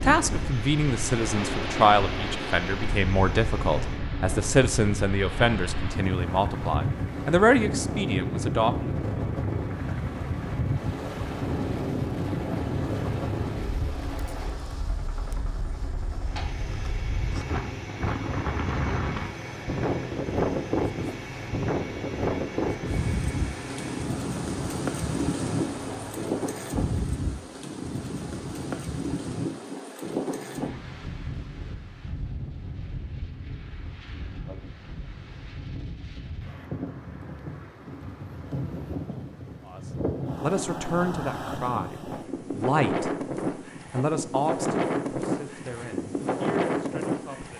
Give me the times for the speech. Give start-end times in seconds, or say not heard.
0.0-8.9, 39.6-43.2, 43.9-47.5.